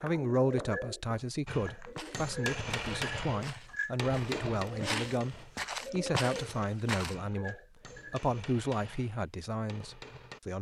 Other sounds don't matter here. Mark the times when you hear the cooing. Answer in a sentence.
The cooing can be heard from 0.0 to 8.3 s.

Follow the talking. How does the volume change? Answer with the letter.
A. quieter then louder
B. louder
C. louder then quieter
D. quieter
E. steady
E.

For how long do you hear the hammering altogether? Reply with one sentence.
The hammering can be heard for 9 seconds in total.